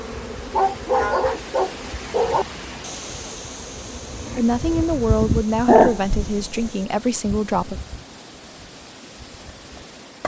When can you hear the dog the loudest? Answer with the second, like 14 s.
6 s.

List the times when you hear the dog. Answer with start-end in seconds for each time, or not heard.
0.5-2.5, 5.7-6.7.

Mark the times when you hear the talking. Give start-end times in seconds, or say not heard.
4.3-7.8.